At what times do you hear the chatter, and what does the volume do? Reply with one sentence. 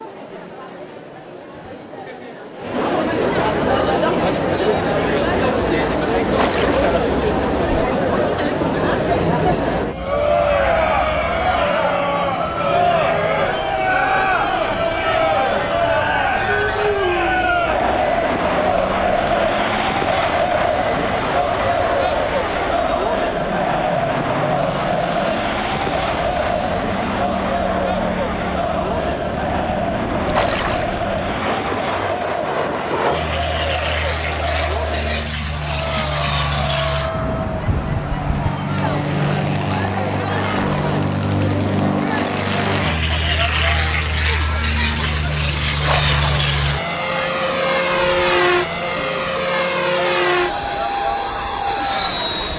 You can hear the chatter from 0.0 to 52.5 s, getting quieter.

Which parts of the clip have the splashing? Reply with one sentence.
You can hear the splashing from 6.3 to 7.0 s, from 30.3 to 31.0 s and from 45.8 to 46.4 s.